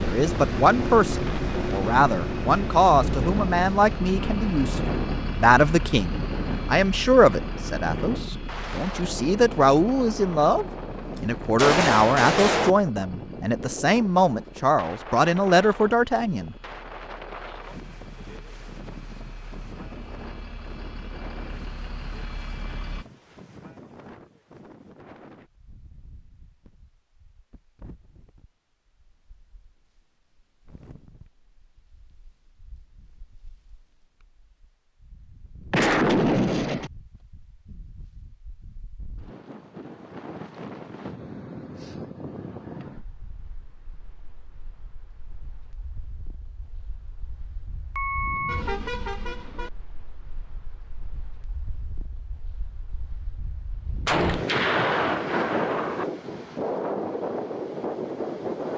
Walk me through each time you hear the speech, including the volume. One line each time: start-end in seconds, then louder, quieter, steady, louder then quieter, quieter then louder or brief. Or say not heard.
0.0-16.6 steady.